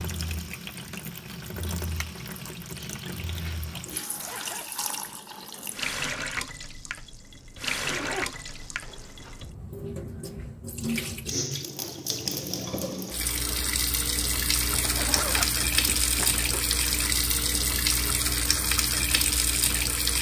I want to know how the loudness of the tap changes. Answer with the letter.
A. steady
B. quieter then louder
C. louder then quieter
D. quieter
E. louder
E.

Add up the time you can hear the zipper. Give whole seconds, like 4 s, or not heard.
6 s.